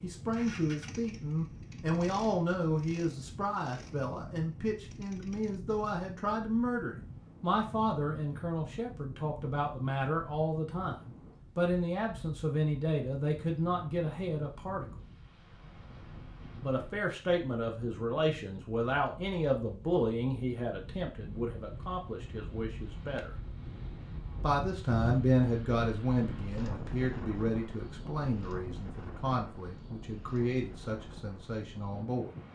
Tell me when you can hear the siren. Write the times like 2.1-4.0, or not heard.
not heard.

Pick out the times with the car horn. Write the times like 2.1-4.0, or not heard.
not heard.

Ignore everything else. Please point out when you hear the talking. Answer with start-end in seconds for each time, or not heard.
0.0-14.8, 16.6-23.4, 24.4-32.3.